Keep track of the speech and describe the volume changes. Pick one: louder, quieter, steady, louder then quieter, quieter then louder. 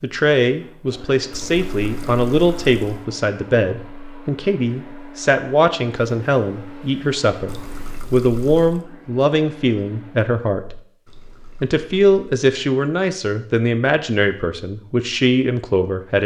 steady.